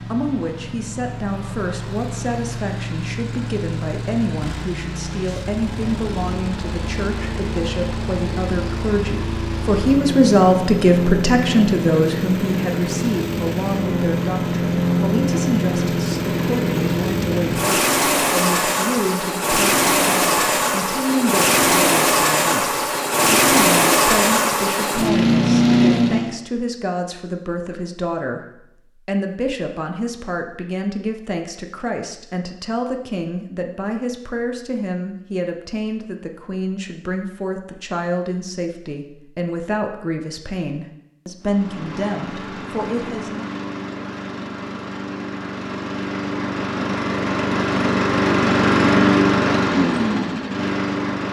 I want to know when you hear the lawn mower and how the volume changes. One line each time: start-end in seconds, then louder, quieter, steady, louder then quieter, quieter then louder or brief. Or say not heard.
0.0-26.4 louder
41.4-51.2 louder.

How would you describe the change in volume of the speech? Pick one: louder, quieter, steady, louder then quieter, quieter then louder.
louder then quieter.